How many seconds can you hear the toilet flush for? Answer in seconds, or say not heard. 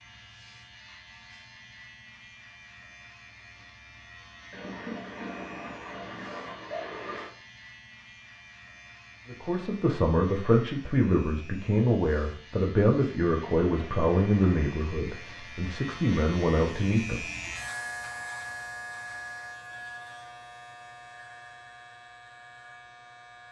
4 s.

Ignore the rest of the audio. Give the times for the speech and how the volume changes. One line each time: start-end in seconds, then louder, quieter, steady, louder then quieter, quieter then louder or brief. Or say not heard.
9.2-17.2 steady.